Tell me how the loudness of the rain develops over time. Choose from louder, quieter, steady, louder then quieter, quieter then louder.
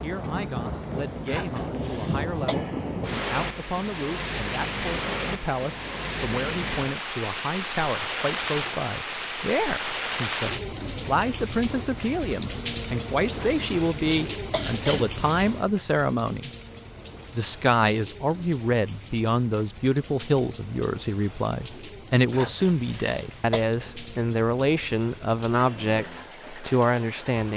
quieter.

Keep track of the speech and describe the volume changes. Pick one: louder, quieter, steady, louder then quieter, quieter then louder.
louder.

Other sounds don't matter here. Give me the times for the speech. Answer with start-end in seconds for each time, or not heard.
0.0-16.5, 17.4-27.5.